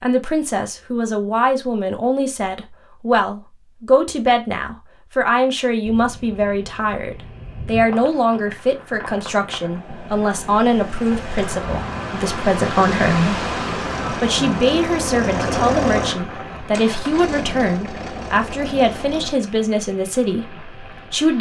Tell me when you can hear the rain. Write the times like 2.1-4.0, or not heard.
5.8-21.3.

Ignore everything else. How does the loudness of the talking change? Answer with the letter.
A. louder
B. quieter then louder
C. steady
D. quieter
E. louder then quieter
C.